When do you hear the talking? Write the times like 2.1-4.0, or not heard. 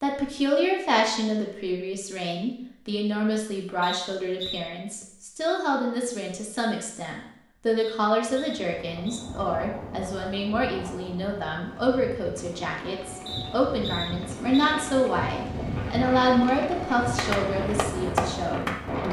0.0-19.0.